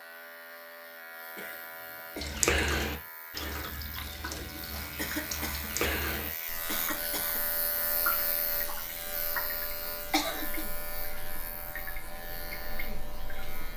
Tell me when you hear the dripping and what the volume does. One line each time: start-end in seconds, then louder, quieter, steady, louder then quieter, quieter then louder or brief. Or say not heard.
2.1-13.7 quieter.